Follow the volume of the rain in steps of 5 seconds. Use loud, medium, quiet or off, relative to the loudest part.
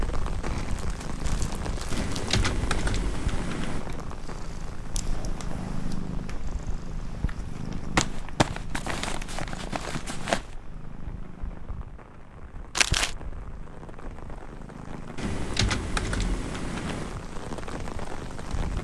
loud, medium, medium, loud.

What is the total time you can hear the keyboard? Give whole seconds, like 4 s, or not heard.
4 s.